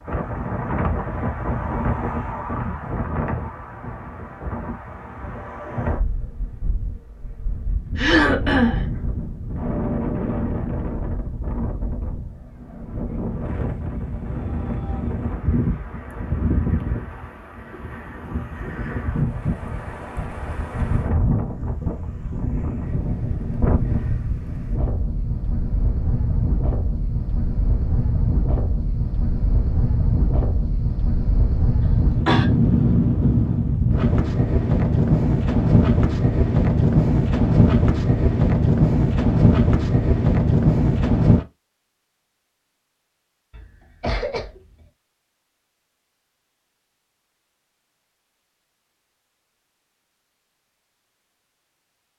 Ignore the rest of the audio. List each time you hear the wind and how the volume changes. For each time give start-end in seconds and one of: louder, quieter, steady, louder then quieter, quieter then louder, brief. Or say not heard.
0.0-41.5 louder.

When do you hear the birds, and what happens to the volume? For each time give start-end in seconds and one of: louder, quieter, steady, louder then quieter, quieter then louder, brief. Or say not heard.
not heard.